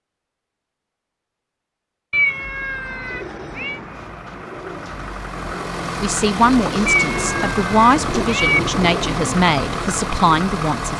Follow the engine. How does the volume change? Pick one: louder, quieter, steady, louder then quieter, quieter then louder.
louder.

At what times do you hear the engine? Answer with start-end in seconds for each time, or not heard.
2.6-10.9.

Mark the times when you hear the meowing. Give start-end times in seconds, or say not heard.
2.1-3.8, 6.8-8.6.